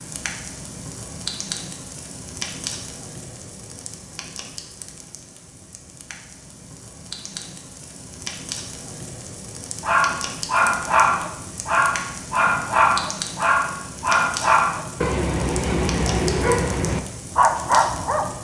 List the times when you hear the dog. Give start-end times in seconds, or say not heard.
9.8-18.4.